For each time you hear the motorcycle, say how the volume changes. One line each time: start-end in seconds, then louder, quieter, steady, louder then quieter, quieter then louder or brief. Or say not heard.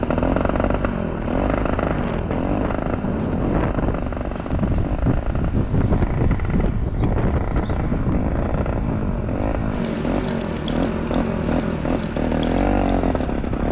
0.0-13.6 quieter then louder.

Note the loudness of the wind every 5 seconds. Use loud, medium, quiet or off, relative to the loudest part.
loud, loud, medium.